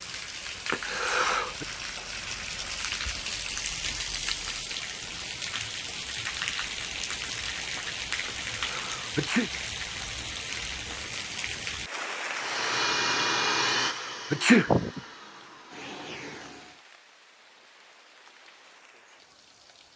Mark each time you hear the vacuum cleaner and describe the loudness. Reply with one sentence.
The vacuum cleaner can be heard from 12.3 to 16.8 s, getting quieter then louder.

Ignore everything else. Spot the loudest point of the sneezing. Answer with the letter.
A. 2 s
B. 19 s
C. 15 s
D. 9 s
C.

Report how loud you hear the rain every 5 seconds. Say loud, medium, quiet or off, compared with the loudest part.
loud, loud, loud, quiet.